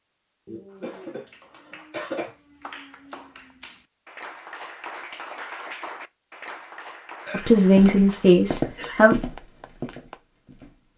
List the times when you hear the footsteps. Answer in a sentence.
The footsteps can be heard from 7.6 to 10.9 s.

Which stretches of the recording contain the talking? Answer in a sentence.
You can hear the talking from 7.3 to 9.2 s.